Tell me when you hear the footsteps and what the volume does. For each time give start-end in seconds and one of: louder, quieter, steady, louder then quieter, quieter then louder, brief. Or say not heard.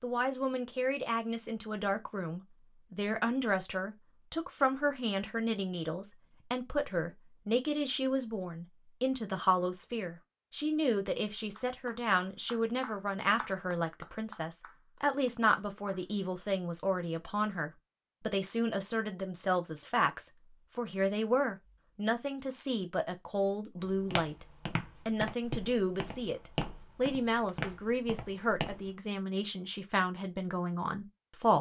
23.8-28.9 quieter.